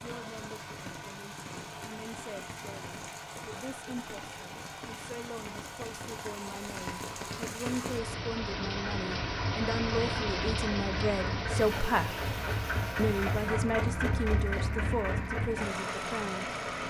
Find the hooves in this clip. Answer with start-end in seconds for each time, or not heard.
not heard.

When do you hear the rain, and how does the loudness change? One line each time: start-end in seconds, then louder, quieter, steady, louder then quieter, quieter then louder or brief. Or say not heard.
0.0-16.8 louder then quieter.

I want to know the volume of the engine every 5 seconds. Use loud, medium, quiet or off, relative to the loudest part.
medium, medium, loud, loud.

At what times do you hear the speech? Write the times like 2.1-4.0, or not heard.
0.0-12.2, 12.9-16.6.